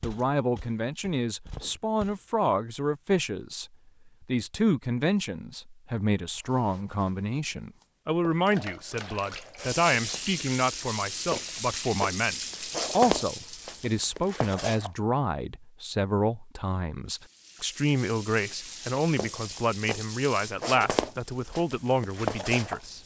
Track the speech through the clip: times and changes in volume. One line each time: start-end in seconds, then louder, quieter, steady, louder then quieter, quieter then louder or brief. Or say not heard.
0.0-12.3 steady
12.9-23.0 steady.